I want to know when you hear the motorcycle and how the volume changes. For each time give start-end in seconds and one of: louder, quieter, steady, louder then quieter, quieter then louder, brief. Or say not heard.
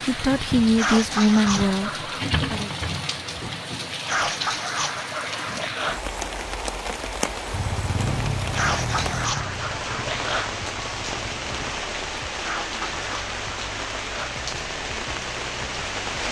7.5-11.7 quieter.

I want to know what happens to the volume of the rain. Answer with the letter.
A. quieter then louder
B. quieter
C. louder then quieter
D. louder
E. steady
E.